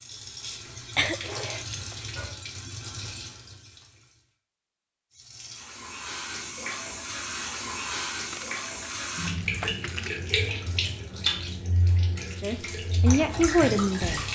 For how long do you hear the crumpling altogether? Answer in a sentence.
You can hear the crumpling for 3 seconds altogether.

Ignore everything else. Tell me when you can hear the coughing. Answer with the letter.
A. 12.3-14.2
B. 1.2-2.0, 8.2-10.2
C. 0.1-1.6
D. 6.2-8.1
C.